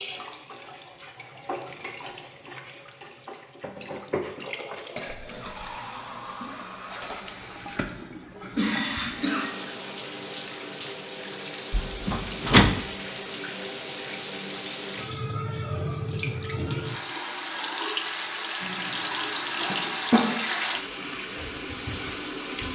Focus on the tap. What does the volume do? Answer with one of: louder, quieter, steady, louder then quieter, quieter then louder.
louder.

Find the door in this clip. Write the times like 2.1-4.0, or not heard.
11.7-12.8.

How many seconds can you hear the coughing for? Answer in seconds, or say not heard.
4 s.